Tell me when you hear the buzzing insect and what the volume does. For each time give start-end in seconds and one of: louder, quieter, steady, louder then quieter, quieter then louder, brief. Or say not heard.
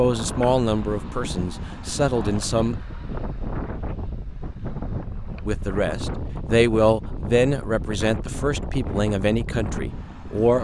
not heard.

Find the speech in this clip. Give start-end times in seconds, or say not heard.
0.0-2.8, 5.5-10.5.